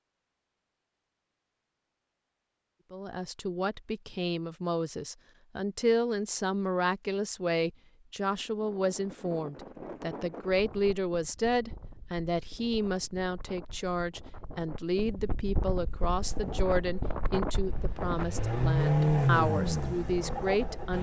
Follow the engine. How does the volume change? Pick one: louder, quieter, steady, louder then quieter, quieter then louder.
louder then quieter.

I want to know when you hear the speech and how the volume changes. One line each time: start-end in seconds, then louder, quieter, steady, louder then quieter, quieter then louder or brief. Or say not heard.
2.9-20.9 steady.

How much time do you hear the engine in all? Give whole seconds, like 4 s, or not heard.
5 s.